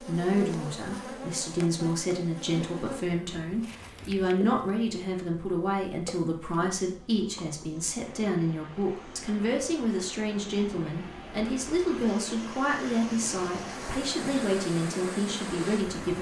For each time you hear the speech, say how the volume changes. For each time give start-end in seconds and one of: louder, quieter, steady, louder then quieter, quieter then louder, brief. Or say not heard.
0.0-16.1 steady.